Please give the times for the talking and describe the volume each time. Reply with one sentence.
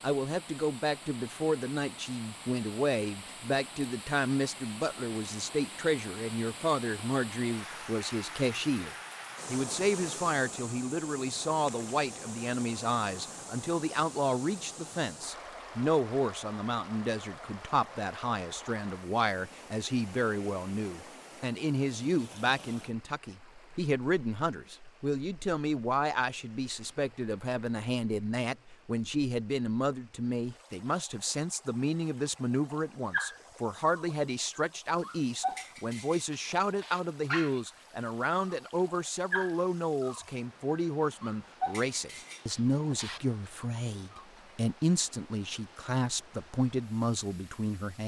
You can hear the talking from 0.0 to 48.0 s, at a steady volume.